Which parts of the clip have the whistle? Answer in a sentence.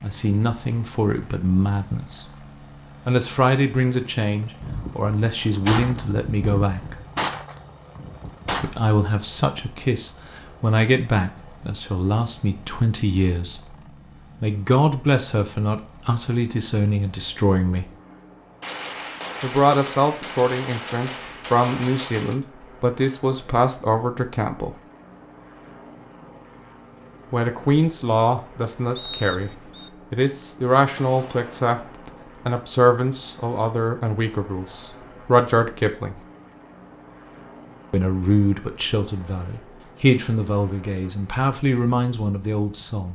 The whistle can be heard from 28.9 to 29.9 s.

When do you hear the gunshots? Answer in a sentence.
The gunshots can be heard from 4.6 to 8.8 s, from 18.6 to 22.4 s and from 30.9 to 32.0 s.